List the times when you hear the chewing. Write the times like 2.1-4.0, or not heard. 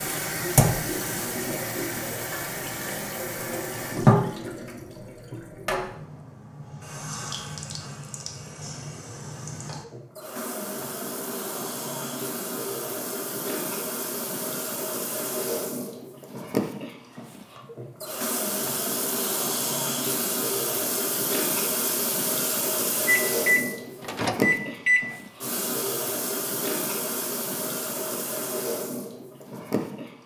not heard.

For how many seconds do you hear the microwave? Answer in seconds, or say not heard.
2 s.